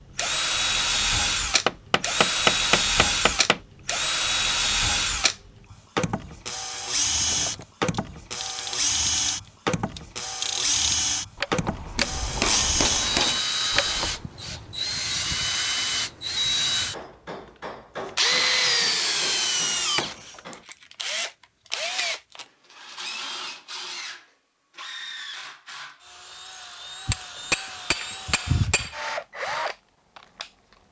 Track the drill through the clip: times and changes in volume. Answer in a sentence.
The drill can be heard from 0.1 to 30.5 s, getting quieter.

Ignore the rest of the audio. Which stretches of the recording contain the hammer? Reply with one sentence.
You can hear the hammer from 1.6 to 3.6 s, from 11.9 to 13.4 s and from 27.1 to 28.9 s.